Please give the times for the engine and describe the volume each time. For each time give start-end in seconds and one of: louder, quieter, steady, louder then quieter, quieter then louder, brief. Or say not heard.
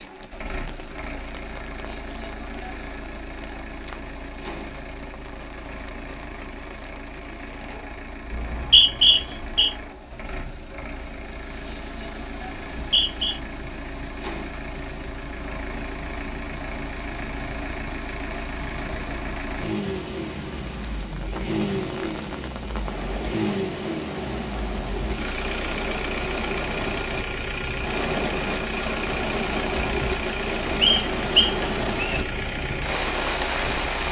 0.0-34.0 louder.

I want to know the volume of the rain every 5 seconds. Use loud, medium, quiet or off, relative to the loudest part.
quiet, quiet, quiet, quiet, medium, loud, loud.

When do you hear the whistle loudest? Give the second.
9 s.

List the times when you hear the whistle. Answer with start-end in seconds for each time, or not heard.
8.3-9.7, 12.7-13.3, 30.8-32.2.